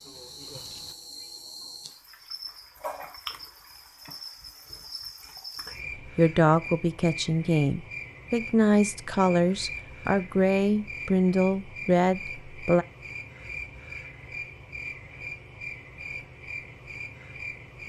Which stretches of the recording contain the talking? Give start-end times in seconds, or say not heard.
6.2-12.8.